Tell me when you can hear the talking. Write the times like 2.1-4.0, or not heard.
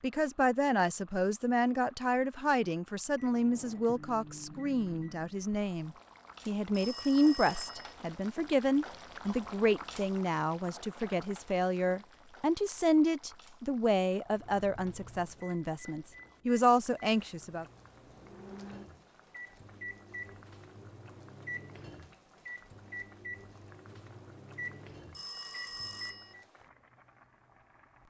0.0-17.6.